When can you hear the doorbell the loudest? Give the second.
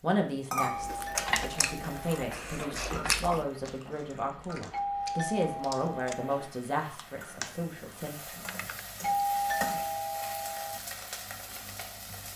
9 s.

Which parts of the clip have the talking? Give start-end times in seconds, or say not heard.
0.0-8.4.